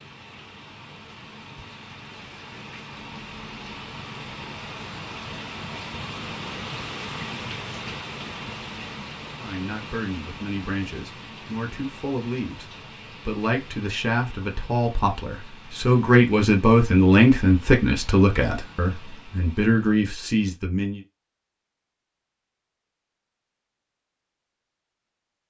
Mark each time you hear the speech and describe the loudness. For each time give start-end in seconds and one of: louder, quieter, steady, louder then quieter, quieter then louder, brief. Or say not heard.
9.3-21.0 louder then quieter.